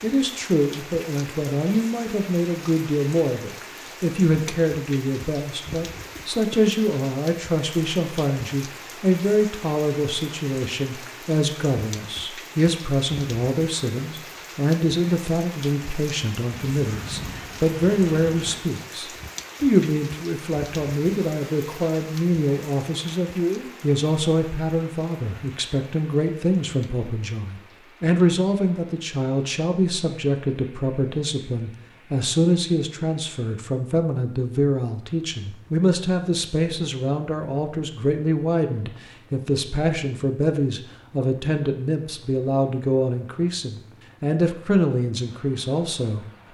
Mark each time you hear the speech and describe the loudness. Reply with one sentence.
You can hear the speech from 0.0 to 46.2 s, at a steady volume.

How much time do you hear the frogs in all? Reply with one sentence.
The frogs can't be heard in this clip.